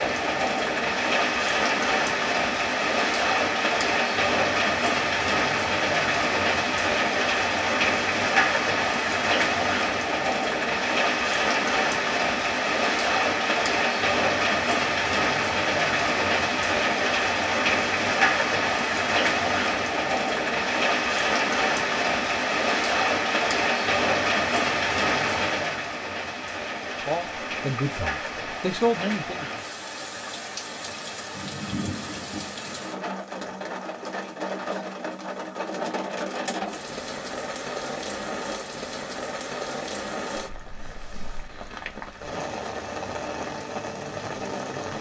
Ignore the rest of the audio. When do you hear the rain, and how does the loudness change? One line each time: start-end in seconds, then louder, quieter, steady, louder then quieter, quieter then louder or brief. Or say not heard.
0.0-44.9 quieter.